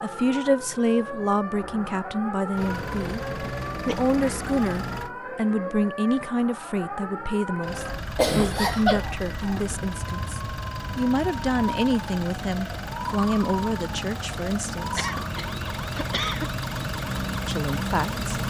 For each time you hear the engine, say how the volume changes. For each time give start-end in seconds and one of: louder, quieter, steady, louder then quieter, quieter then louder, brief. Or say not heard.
2.5-5.1 brief
7.6-18.4 louder.